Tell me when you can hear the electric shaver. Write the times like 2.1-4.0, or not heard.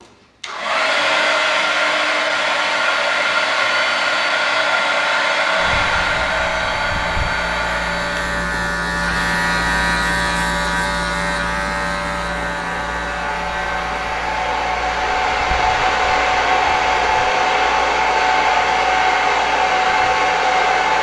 5.5-20.9.